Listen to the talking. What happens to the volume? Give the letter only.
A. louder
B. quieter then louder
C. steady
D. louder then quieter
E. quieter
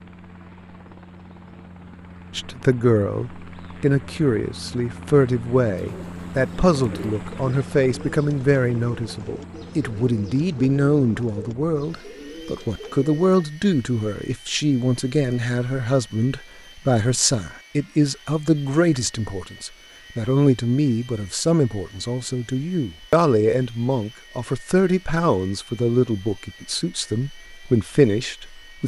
C.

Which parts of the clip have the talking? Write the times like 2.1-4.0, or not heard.
2.4-28.8.